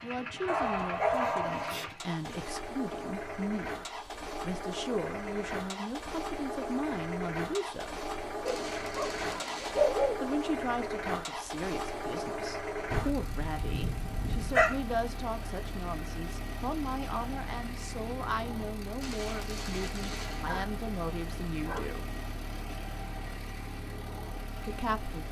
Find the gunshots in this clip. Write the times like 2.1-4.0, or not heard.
8.4-10.0, 19.0-20.6.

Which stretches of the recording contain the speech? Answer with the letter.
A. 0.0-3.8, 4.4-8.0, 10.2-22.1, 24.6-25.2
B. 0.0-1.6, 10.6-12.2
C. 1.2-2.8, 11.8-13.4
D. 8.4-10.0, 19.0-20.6
A.